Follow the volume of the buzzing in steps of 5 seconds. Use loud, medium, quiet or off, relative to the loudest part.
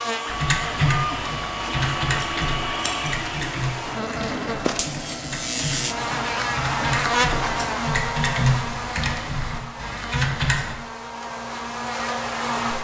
medium, loud, loud.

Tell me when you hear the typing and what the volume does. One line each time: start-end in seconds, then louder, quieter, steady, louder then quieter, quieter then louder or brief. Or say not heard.
0.2-10.8 quieter then louder.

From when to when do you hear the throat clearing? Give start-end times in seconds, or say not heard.
not heard.